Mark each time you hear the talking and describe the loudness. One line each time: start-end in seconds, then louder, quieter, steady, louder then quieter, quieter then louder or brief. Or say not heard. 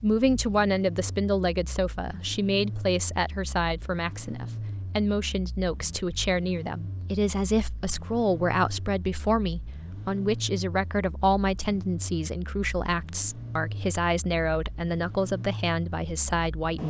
0.0-16.8 steady.